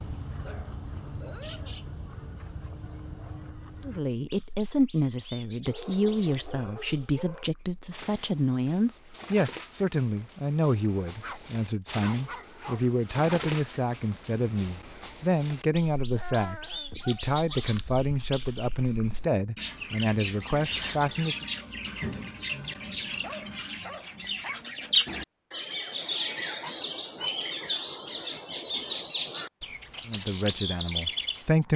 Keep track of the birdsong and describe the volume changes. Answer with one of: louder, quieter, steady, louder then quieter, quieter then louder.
louder.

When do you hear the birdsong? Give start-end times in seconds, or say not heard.
0.0-31.7.